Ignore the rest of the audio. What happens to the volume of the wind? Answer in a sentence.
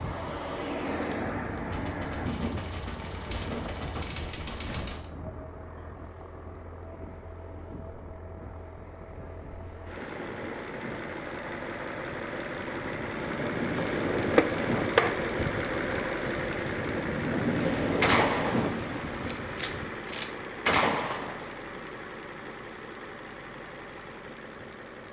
The volume of the wind goes down, then up.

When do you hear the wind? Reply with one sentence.
You can hear the wind from 0.0 to 20.1 s.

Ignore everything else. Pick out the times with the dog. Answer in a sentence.
You can't hear the dog here.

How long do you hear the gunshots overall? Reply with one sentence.
You can hear the gunshots for 7 seconds altogether.